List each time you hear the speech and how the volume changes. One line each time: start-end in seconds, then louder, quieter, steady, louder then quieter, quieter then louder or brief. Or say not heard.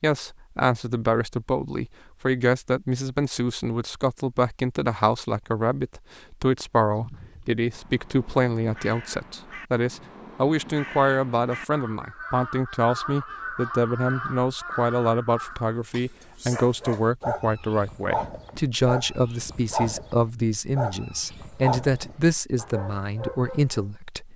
0.0-24.3 steady.